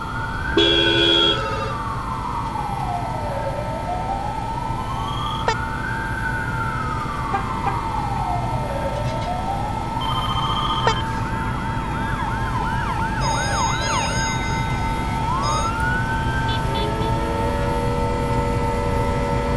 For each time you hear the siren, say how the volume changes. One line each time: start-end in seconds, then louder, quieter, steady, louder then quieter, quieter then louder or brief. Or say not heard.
0.0-19.5 steady.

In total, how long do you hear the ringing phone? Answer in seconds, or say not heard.
6 s.